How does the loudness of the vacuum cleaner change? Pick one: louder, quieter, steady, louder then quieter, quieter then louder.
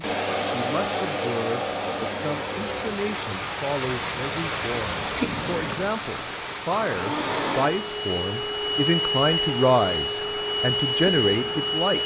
quieter then louder.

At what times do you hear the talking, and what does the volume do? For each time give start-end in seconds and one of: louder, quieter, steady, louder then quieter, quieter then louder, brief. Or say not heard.
0.0-12.0 louder.